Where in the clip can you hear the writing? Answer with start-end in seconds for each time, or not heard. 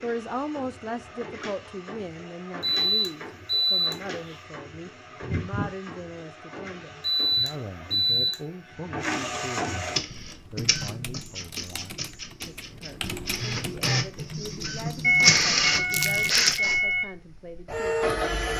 not heard.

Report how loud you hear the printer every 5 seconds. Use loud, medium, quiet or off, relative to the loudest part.
quiet, medium, medium, loud.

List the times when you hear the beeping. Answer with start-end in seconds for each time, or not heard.
2.6-4.0, 7.2-8.3, 15.0-17.1.